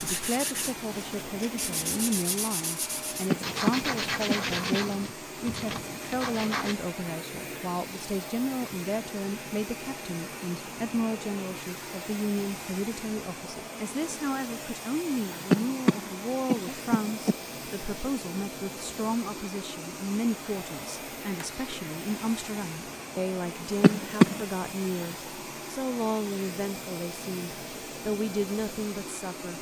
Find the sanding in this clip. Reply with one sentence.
The sanding can be heard from 0.0 to 6.8 s.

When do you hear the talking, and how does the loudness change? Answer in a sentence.
The talking can be heard from 0.0 to 29.5 s, at a steady volume.